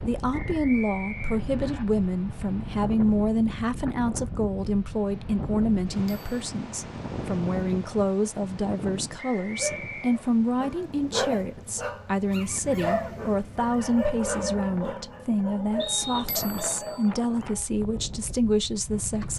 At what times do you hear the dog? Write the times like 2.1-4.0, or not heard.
9.6-17.6.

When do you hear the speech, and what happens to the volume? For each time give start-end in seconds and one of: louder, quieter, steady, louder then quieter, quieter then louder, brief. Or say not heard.
0.0-19.3 steady.